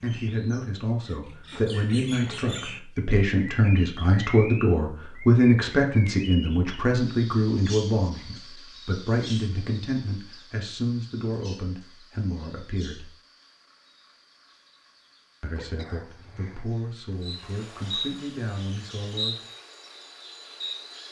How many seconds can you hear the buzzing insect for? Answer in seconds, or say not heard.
4 s.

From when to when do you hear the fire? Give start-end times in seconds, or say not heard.
not heard.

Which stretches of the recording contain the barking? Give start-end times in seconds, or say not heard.
not heard.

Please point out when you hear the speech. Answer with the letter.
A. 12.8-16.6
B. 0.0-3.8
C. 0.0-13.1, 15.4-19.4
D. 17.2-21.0
C.